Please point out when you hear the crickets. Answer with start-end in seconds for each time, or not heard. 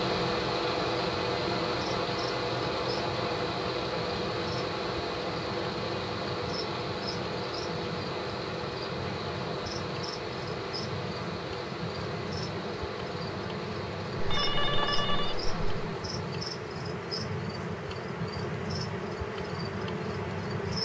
0.0-20.8.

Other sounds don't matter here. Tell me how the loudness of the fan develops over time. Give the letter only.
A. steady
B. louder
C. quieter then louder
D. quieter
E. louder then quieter
D.